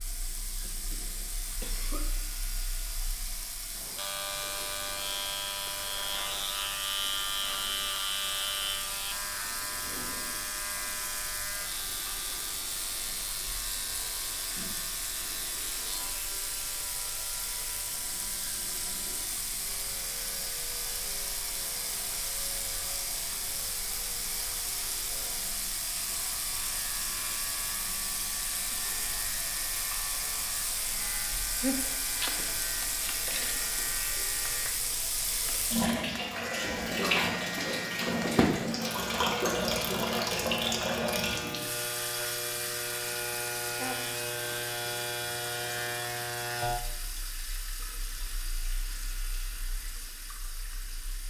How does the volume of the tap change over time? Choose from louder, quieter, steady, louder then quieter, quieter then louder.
louder then quieter.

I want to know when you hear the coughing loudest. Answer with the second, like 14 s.
32 s.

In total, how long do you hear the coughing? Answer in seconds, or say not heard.
4 s.